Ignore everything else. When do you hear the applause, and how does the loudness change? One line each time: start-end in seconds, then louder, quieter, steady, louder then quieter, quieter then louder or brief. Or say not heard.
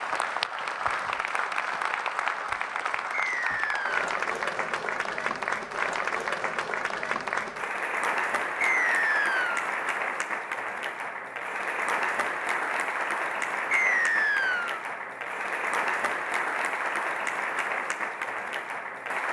0.0-19.2 steady.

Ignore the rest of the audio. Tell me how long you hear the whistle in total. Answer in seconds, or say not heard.
3 s.